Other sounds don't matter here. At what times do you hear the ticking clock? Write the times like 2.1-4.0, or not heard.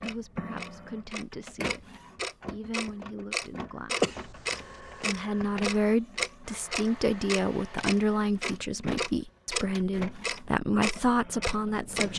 0.0-12.1.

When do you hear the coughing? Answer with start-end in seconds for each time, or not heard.
4.0-5.2.